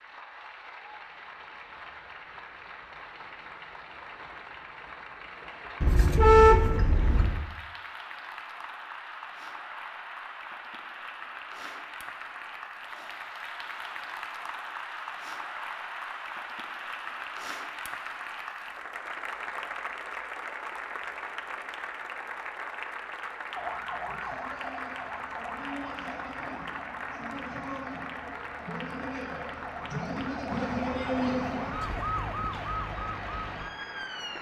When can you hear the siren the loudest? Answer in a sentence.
The volume of the siren peaks at 31 seconds.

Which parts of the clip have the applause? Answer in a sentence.
The applause can be heard from 0.0 to 34.3 s.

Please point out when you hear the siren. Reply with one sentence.
You can hear the siren from 23.5 to 34.3 s.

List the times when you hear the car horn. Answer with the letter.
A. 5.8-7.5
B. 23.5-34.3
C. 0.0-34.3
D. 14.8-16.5
A.